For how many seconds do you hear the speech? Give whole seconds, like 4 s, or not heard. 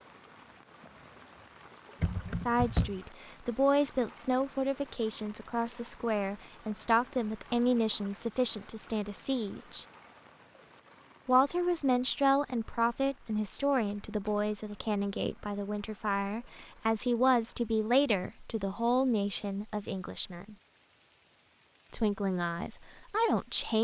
19 s.